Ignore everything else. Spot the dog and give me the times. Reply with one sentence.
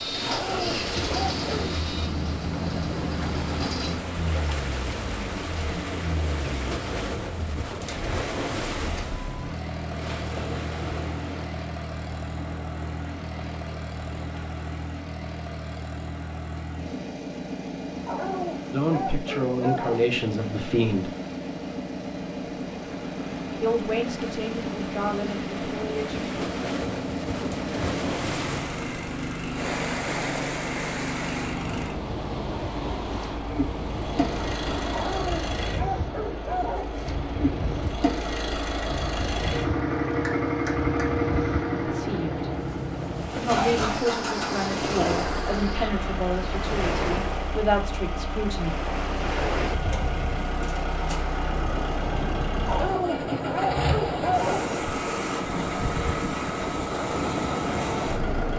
You can hear the dog from 0.2 to 1.6 s, from 18.1 to 19.9 s, from 34.9 to 36.9 s and from 52.6 to 54.6 s.